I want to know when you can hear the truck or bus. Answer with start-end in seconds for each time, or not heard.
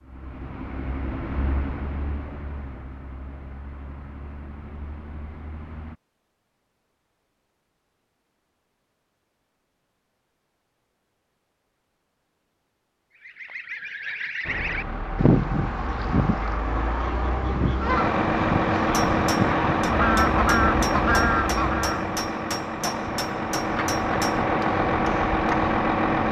0.0-6.0, 14.4-26.2.